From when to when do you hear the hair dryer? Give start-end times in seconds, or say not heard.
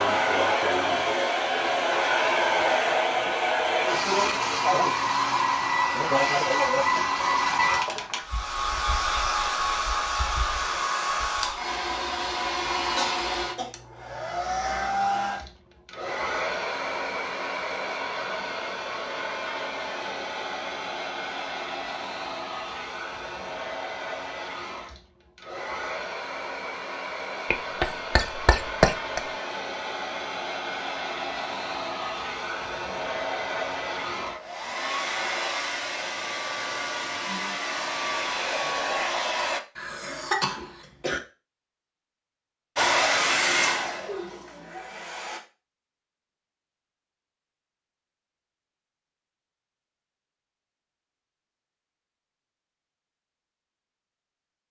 0.0-39.6, 42.8-45.4.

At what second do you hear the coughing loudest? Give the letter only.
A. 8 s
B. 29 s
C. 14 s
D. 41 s
B.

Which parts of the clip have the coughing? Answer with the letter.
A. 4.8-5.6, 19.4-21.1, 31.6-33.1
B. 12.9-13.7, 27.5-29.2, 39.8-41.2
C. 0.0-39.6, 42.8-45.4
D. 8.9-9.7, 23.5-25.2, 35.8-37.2
B.